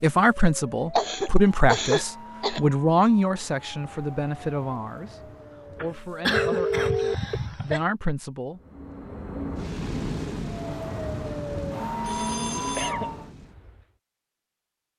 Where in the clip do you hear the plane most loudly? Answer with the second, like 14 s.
10 s.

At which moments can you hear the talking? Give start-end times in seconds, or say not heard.
0.0-8.6.